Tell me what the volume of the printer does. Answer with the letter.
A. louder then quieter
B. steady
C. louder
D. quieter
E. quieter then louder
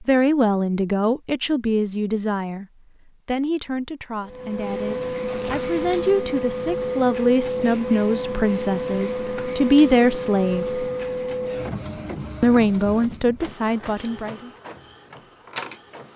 D.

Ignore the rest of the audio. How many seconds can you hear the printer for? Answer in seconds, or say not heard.
12 s.